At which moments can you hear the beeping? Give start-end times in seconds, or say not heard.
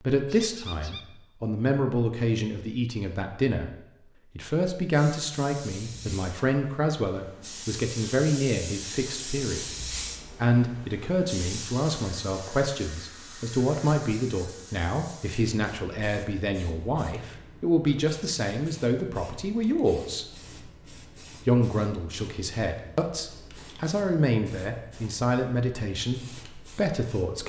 not heard.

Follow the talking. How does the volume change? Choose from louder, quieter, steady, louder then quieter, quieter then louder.
steady.